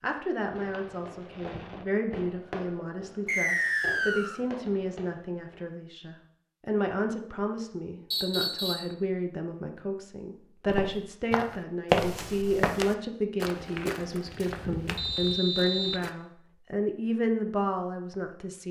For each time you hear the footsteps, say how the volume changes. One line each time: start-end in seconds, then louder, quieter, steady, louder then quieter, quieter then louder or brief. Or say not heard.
10.7-16.1 quieter.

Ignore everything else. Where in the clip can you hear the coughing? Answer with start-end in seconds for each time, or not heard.
not heard.